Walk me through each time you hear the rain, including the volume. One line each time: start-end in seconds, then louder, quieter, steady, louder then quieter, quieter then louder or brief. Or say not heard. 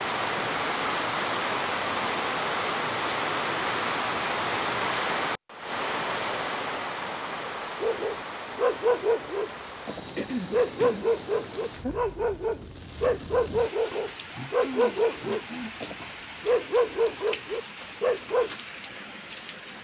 0.0-19.7 quieter.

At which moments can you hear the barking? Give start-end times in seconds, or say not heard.
7.8-18.6.